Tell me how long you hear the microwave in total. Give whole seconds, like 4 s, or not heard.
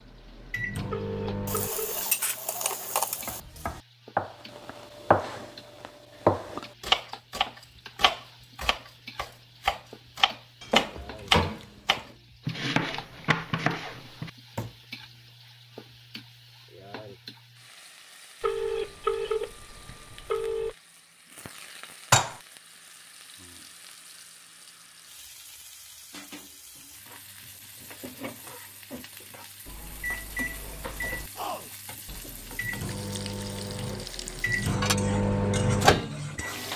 9 s.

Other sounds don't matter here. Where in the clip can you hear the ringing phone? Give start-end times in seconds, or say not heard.
0.9-2.0, 18.4-20.8.